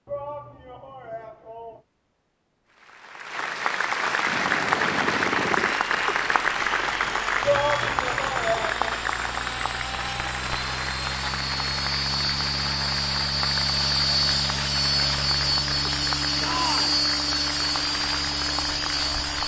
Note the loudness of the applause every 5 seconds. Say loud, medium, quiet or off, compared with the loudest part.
loud, loud, medium, medium.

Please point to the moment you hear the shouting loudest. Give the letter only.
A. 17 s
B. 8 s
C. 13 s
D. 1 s
B.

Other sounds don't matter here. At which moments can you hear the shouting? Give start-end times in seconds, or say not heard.
0.1-1.8, 7.4-8.9, 16.4-17.0.